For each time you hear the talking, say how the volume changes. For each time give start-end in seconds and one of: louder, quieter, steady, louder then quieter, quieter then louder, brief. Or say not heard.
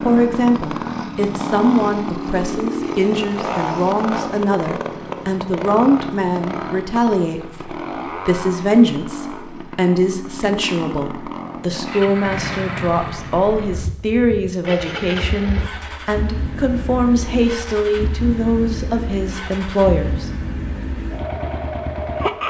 0.0-20.3 steady.